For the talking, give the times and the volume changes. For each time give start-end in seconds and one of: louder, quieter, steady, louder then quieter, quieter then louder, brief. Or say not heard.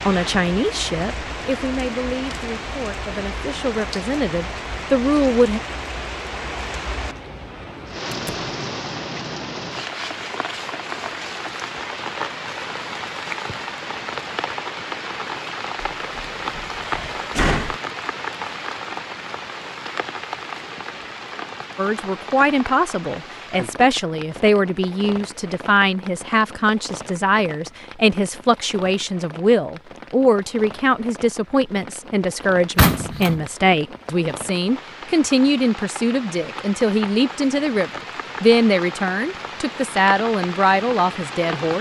0.0-5.6 quieter then louder
21.8-41.7 steady.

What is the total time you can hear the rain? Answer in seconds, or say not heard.
42 s.